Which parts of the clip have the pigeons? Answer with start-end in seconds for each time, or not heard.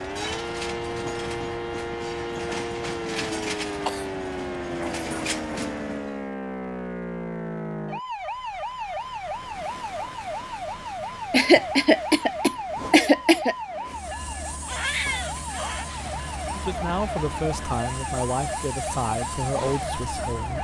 not heard.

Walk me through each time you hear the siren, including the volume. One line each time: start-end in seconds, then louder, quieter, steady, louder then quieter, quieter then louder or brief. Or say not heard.
0.0-20.5 steady.